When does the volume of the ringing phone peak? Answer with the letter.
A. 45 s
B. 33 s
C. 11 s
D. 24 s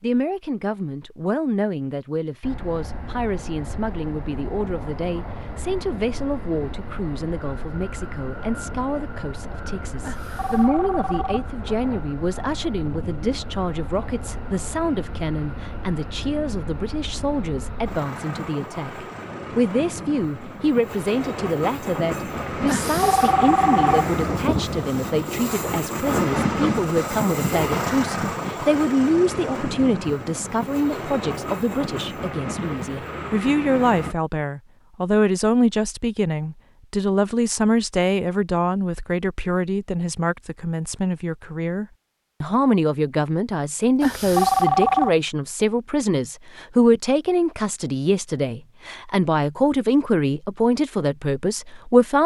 A.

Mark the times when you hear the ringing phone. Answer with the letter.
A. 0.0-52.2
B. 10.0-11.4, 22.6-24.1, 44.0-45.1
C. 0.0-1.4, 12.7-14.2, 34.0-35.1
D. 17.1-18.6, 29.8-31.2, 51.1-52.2
B.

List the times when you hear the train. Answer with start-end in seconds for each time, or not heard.
2.4-34.1.